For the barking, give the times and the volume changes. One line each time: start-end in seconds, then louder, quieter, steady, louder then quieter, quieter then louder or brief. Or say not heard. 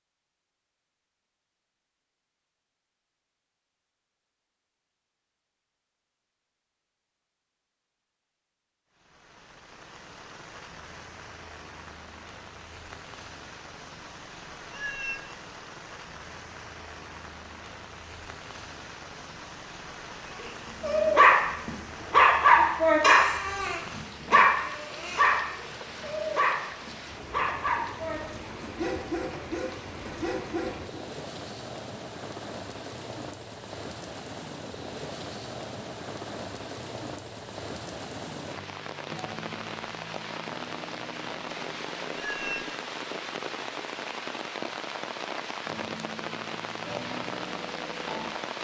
20.8-31.0 quieter.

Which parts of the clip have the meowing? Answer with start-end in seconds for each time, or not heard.
14.7-15.3, 42.1-42.7.